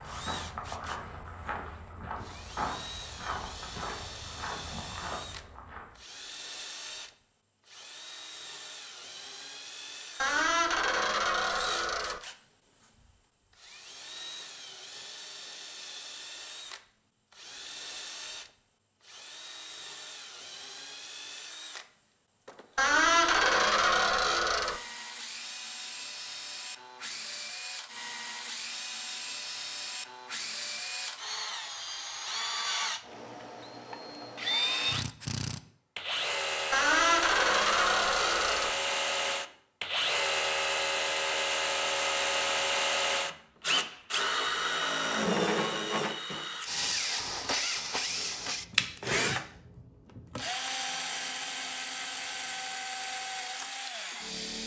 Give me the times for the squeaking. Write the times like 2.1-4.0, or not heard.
10.2-12.2, 22.8-24.8, 36.7-38.8.